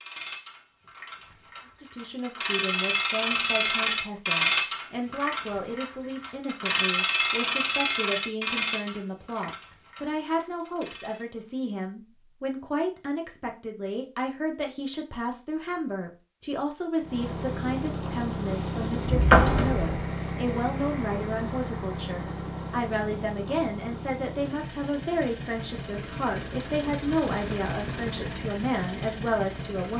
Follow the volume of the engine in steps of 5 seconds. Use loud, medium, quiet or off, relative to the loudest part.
off, off, off, loud, loud, loud.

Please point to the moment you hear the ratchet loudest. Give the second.
4 s.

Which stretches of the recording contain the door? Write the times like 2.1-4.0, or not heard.
19.0-19.9.